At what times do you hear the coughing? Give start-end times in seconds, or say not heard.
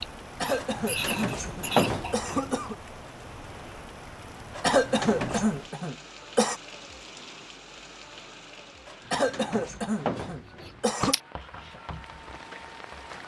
0.4-2.8, 4.6-6.5, 9.1-11.2.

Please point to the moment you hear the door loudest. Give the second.
2 s.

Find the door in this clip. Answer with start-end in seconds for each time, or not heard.
0.6-2.5, 4.5-5.5, 8.8-11.2.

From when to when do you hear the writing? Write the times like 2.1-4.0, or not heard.
0.0-2.5, 10.4-13.2.